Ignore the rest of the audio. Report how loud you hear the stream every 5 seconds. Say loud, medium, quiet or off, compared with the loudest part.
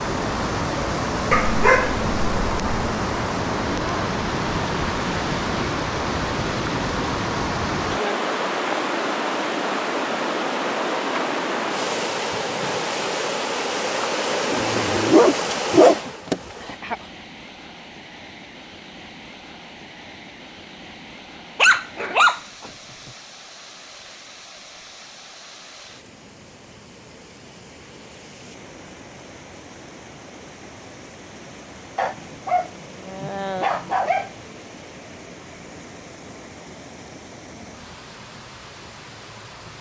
loud, loud, loud, medium, quiet, quiet, quiet, quiet.